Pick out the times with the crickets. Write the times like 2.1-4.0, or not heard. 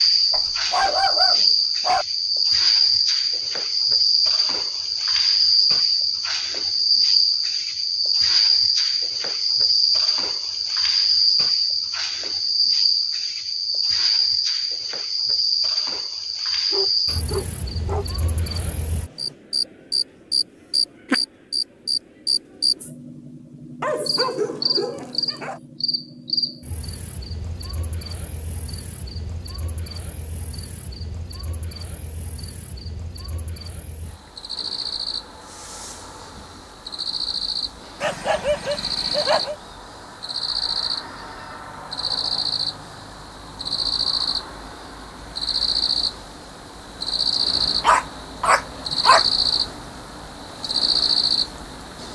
0.0-52.0.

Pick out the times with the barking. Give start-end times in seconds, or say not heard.
0.3-2.0, 16.7-18.1, 23.8-25.6, 38.0-39.5, 47.8-49.2.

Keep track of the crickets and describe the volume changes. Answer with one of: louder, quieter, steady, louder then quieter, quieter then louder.
quieter then louder.